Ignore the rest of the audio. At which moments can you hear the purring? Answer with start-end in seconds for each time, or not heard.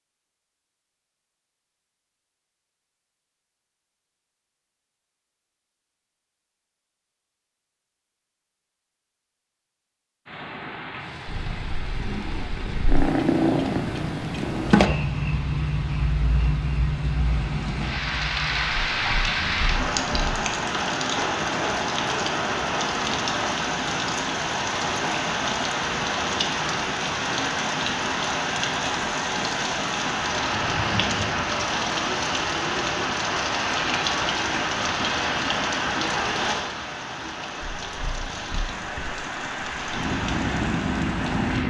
11.2-20.4, 37.6-41.6.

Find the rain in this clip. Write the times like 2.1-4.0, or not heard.
10.2-41.6.